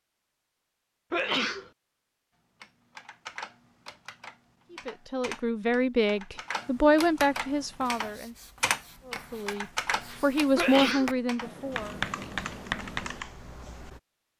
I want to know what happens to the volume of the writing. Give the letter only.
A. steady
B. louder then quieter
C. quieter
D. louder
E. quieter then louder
D.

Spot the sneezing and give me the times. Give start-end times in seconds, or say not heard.
1.1-1.7, 10.6-11.2.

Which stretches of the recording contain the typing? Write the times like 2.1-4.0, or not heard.
2.6-14.0.